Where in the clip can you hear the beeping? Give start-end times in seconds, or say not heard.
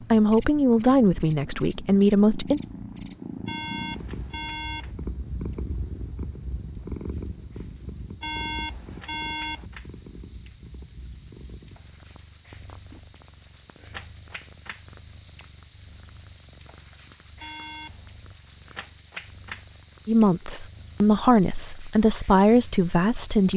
3.5-4.9, 8.2-9.7, 17.4-18.1.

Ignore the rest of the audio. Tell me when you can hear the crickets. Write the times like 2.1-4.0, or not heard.
0.0-23.5.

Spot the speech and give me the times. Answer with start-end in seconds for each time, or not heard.
0.1-2.6, 20.1-23.5.